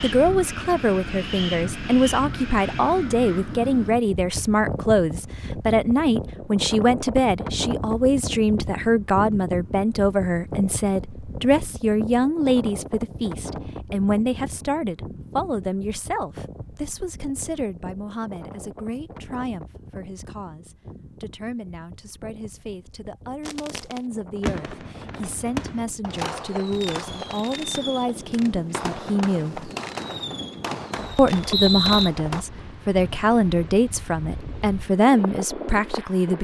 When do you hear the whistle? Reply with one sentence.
The whistle can be heard from 31.5 to 32.1 s.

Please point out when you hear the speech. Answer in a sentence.
The speech can be heard from 0.0 to 29.7 s and from 31.1 to 36.3 s.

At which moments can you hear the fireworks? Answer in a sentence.
You can hear the fireworks from 23.4 to 32.5 s.